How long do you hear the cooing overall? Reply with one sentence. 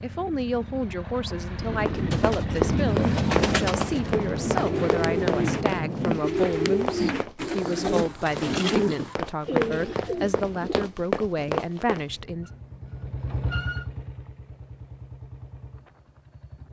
You can hear the cooing for 9 seconds altogether.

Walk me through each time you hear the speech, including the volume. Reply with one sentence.
You can hear the speech from 0.0 to 12.5 s, at a steady volume.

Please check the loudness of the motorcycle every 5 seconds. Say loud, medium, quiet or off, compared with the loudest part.
loud, off, loud, quiet.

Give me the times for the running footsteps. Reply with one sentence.
The running footsteps can be heard from 1.9 to 12.1 s.